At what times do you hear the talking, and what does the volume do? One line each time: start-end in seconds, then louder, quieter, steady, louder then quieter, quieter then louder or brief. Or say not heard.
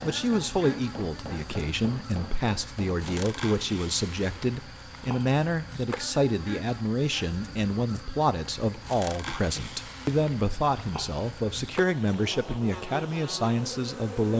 0.0-14.3 steady.